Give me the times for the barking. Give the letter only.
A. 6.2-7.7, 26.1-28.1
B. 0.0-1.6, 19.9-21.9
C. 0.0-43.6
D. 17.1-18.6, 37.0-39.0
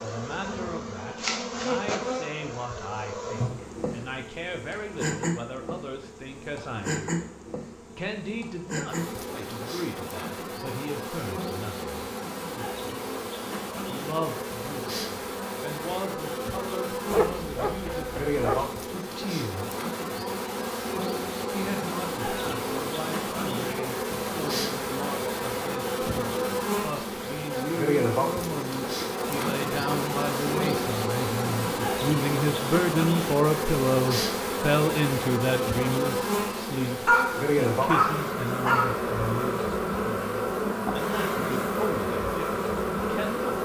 D.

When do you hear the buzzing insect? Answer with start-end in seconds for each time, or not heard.
0.0-43.6.